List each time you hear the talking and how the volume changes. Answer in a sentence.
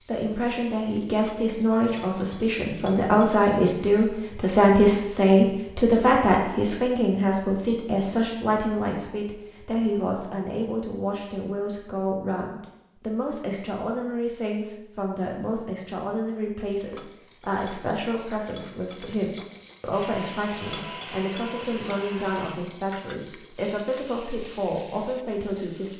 The talking can be heard from 0.1 to 25.9 s, getting quieter.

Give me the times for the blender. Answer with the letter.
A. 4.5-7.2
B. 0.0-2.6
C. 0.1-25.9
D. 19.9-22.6
D.